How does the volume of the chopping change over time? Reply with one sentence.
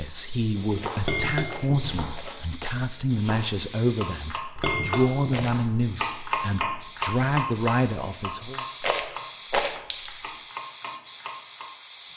The volume of the chopping goes up, then down.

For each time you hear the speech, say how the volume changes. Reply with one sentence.
The speech can be heard from 0.0 to 8.7 s, at a steady volume.